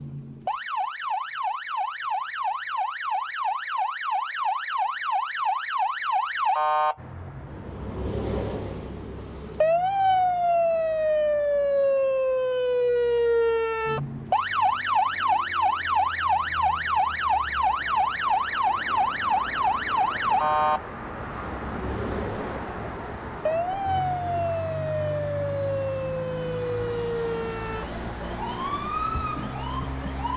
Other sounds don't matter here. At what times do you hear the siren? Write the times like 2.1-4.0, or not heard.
0.0-30.3.